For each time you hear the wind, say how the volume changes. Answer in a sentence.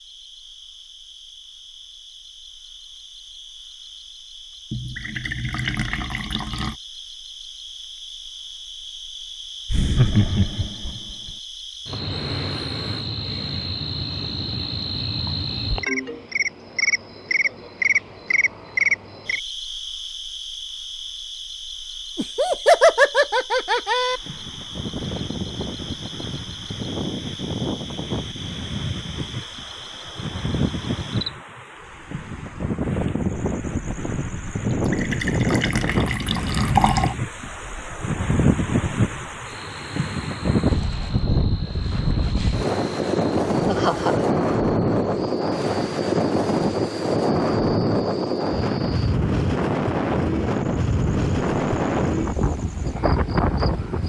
You can hear the wind from 23.9 to 54.0 s, getting louder.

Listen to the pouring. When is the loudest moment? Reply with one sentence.
The loudest moment of the pouring is at 37 seconds.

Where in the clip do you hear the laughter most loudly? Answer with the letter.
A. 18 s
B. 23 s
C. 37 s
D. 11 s
B.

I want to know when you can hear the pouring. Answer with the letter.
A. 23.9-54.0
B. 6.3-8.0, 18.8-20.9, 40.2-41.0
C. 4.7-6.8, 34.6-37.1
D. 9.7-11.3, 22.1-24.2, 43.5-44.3
C.